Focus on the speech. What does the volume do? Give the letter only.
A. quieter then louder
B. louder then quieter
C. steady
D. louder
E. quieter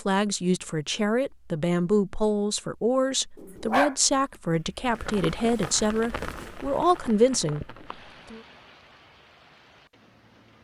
C.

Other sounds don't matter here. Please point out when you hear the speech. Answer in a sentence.
The speech can be heard from 0.0 to 8.4 s.